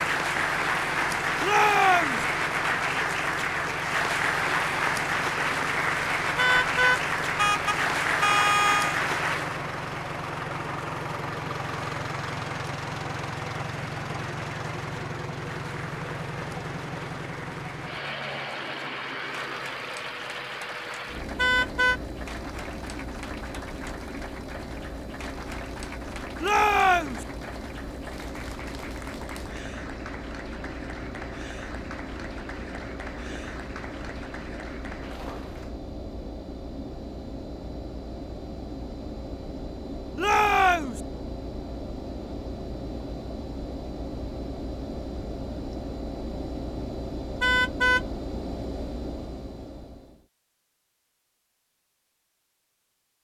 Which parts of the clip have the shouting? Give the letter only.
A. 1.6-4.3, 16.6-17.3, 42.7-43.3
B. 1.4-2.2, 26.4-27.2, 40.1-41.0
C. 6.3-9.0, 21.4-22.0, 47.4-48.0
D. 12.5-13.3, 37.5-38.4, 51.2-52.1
B.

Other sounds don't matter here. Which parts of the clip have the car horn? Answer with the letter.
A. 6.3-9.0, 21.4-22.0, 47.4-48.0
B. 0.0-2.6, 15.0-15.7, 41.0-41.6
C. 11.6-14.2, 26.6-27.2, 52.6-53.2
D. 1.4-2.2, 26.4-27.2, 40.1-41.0
A.